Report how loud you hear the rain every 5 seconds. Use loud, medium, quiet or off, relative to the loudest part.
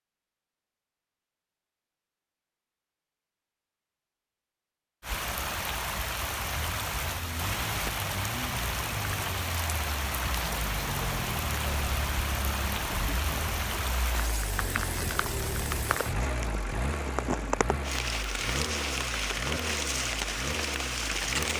off, loud, loud, loud, loud.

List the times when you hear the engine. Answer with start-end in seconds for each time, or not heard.
6.5-21.5.